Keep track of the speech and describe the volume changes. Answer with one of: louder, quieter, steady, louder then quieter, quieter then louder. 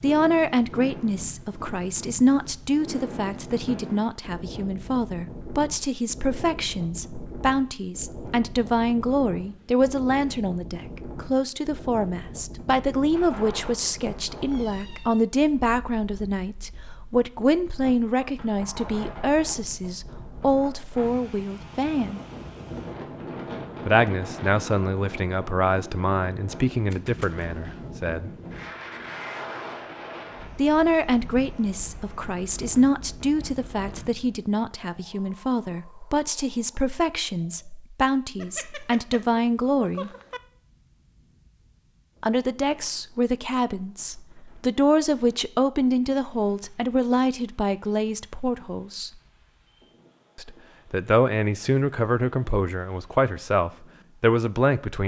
steady.